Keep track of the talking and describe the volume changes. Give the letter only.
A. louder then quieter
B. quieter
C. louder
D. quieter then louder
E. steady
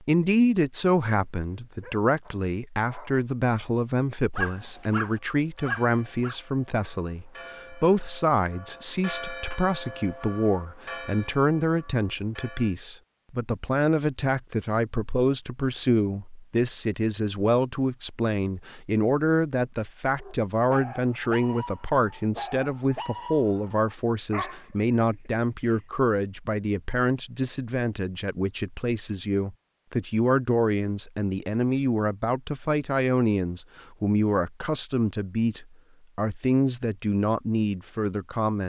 E.